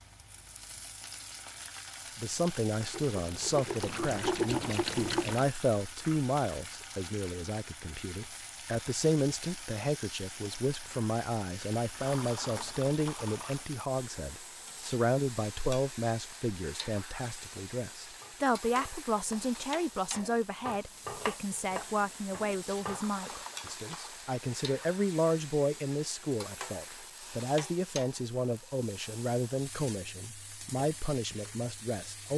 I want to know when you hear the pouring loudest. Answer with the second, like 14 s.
4 s.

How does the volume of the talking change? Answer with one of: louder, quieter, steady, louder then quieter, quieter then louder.
steady.